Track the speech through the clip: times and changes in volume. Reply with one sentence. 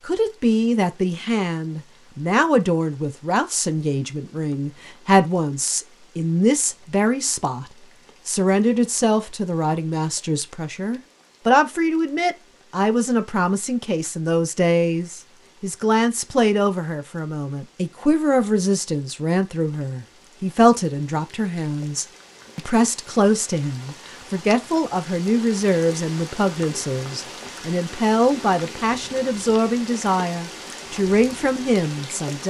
You can hear the speech from 0.1 to 32.4 s, at a steady volume.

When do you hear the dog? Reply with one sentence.
The dog can't be heard in this clip.